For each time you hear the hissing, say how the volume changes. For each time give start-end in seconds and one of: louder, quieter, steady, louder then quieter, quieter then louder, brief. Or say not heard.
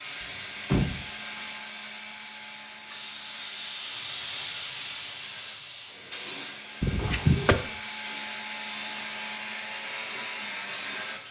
0.0-11.2 louder then quieter.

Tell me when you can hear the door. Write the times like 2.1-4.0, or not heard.
0.2-1.5, 6.8-7.5.